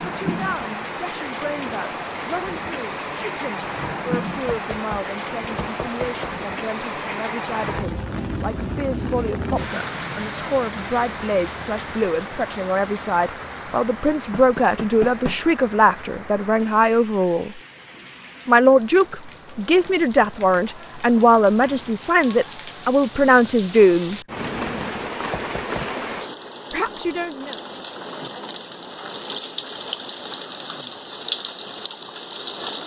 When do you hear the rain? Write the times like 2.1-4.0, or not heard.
0.0-32.8.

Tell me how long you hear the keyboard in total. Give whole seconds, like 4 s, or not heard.
not heard.